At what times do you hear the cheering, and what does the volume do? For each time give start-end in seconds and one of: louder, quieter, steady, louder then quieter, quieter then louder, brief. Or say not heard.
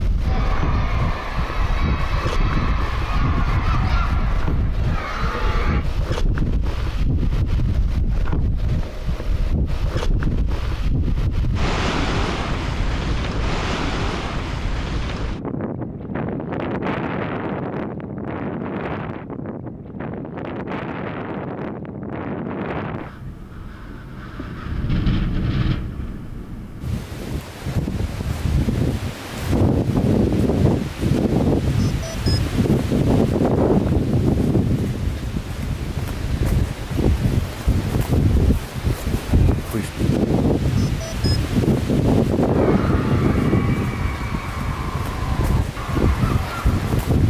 0.2-5.8 steady
42.4-47.1 steady.